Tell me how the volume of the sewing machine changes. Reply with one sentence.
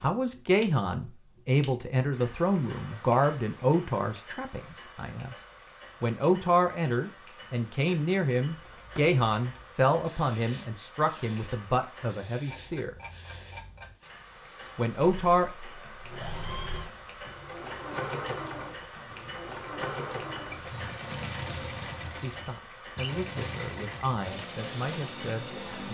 The volume of the sewing machine stays about the same.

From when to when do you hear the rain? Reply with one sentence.
You can't hear the rain here.